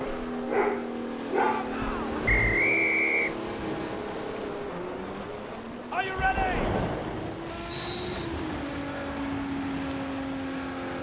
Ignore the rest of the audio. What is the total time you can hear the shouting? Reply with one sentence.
You can hear the shouting for 2 seconds altogether.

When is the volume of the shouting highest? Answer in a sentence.
The loudest moment of the shouting is at 6 seconds.